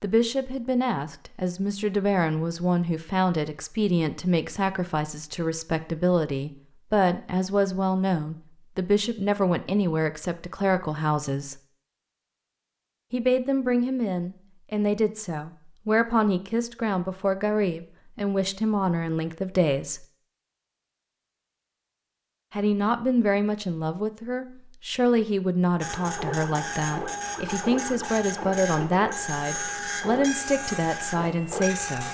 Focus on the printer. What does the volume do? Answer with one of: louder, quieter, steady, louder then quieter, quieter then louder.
steady.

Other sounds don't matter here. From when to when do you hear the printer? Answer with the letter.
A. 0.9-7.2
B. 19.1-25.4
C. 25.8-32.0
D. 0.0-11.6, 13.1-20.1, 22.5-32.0
C.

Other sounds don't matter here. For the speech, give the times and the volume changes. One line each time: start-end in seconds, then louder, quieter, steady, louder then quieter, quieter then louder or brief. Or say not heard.
0.0-11.6 steady
13.1-20.1 steady
22.5-32.0 steady.